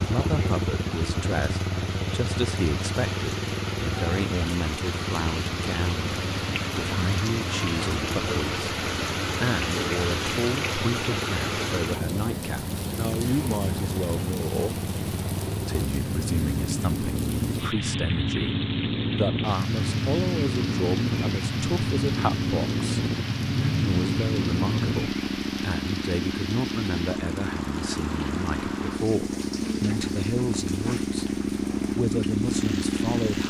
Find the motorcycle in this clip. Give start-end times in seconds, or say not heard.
0.0-33.4.